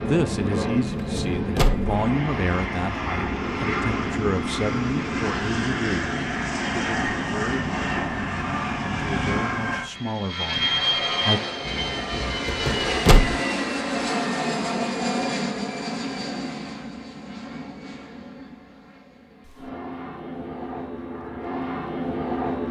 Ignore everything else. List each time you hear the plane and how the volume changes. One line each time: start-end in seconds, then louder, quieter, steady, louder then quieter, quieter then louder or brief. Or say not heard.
0.0-22.6 quieter.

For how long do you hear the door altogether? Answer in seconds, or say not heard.
2 s.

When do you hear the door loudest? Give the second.
13 s.